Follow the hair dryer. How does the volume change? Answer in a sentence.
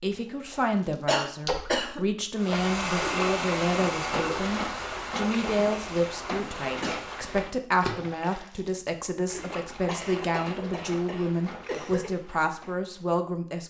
The loudness of the hair dryer goes down.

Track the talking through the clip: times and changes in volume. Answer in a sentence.
You can hear the talking from 0.0 to 13.6 s, at a steady volume.